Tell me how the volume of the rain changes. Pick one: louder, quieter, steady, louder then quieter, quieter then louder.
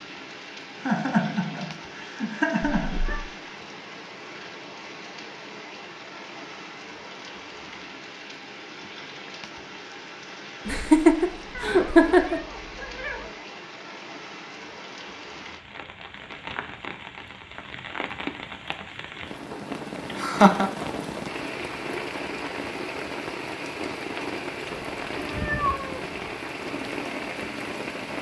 louder.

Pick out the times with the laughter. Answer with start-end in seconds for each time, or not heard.
0.8-3.1, 10.7-12.4, 20.1-20.7.